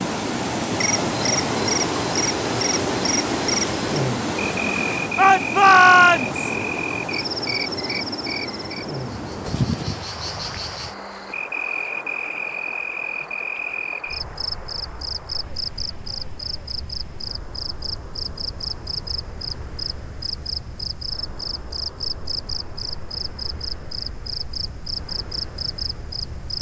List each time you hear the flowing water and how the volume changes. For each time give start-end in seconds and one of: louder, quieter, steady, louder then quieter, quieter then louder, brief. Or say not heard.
0.0-26.5 quieter.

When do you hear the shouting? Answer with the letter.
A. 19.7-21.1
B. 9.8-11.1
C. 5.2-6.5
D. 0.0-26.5
C.